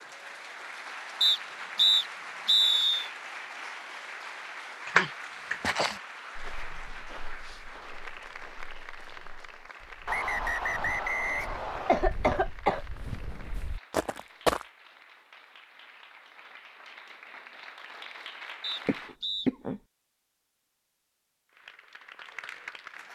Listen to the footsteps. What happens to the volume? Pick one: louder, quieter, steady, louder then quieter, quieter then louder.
quieter then louder.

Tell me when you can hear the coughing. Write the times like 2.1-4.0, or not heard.
4.8-6.0, 11.8-12.8, 18.9-19.8.